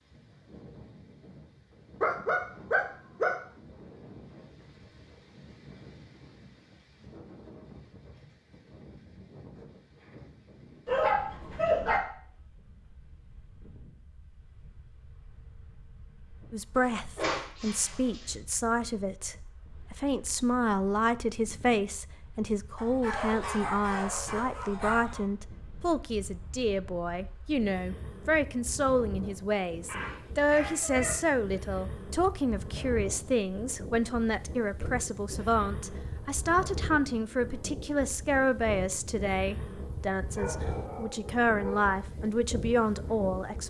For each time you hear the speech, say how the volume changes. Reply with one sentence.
You can hear the speech from 16.5 to 43.6 s, at a steady volume.